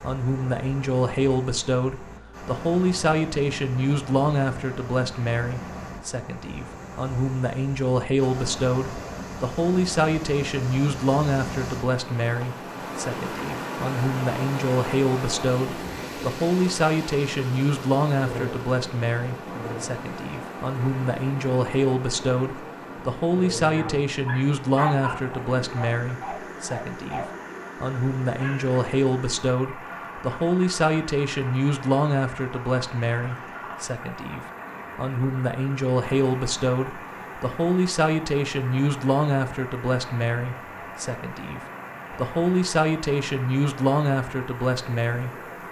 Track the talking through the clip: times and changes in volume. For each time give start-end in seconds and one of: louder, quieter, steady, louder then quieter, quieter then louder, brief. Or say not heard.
0.0-45.3 steady.